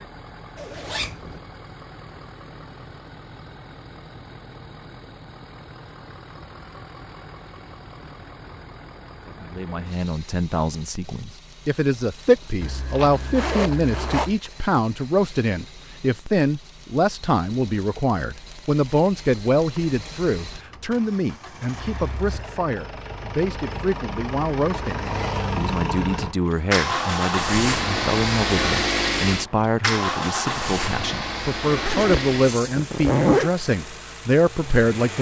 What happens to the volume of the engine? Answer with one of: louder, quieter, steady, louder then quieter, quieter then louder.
louder.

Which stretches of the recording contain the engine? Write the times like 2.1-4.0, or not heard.
0.0-35.1.